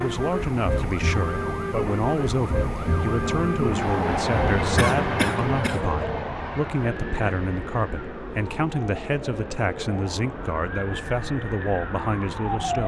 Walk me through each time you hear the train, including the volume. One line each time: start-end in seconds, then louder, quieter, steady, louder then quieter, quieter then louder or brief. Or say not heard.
0.0-12.8 louder then quieter.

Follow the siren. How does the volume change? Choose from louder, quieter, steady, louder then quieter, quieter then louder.
quieter.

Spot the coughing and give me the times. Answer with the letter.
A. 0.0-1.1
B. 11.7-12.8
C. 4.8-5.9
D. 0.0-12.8
C.